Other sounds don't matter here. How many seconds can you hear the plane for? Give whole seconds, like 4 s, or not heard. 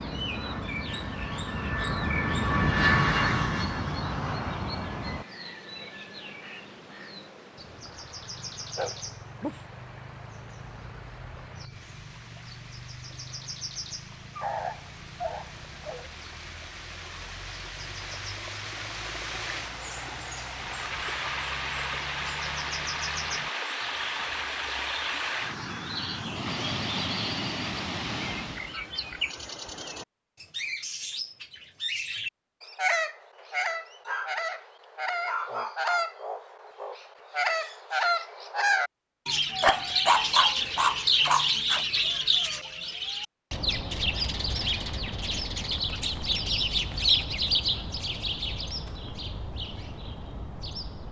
5 s.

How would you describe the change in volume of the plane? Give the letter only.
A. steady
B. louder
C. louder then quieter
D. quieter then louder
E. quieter
C.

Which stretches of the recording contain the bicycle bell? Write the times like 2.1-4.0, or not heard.
not heard.